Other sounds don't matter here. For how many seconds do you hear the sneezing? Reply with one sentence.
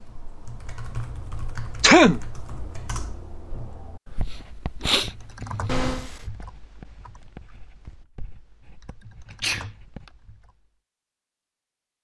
You can hear the sneezing for 3 seconds altogether.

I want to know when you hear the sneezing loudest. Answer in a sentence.
The loudest moment of the sneezing is at 2 seconds.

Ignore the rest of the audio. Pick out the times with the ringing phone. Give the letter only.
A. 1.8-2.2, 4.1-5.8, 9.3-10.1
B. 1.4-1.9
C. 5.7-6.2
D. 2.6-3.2
C.